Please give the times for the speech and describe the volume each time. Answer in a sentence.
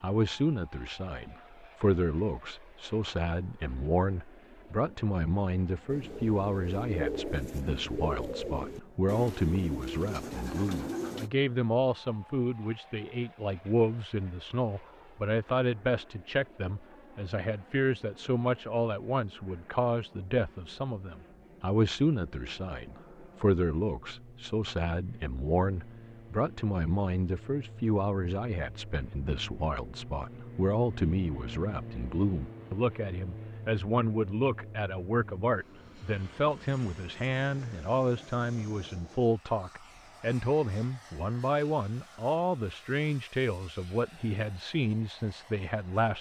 The speech can be heard from 0.0 to 46.1 s, at a steady volume.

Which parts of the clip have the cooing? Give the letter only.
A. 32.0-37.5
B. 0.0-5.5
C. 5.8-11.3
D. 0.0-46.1
C.